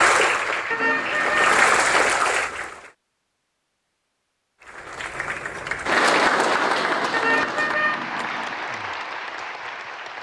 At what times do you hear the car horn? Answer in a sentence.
You can hear the car horn from 0.7 to 2.1 s and from 7.1 to 8.6 s.